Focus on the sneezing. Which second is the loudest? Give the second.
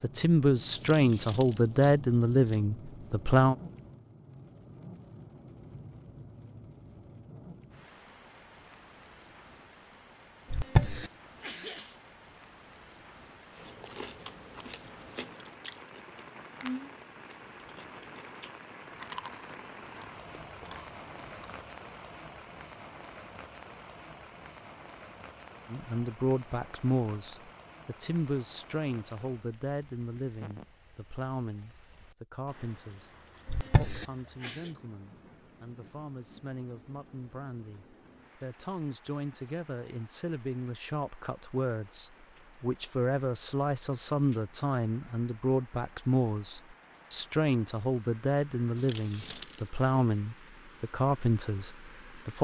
11 s.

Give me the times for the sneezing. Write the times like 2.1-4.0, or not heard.
10.5-11.8, 33.5-34.5.